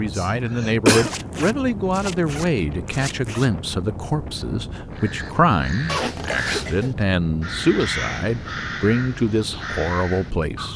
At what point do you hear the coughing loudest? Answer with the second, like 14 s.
1 s.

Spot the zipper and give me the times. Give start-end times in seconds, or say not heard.
0.9-3.5, 5.8-6.9.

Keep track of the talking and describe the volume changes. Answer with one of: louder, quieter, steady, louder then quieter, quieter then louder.
steady.